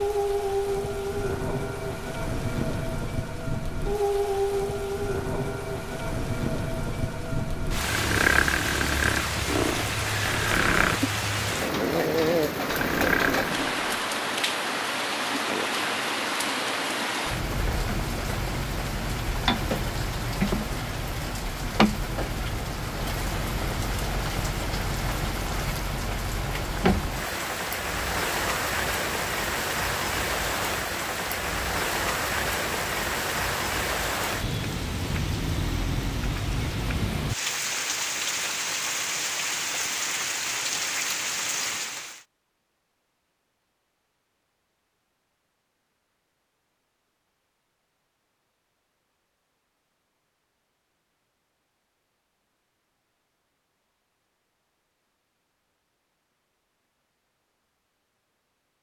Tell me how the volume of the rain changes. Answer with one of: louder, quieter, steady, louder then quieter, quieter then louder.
steady.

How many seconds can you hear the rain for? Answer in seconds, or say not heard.
42 s.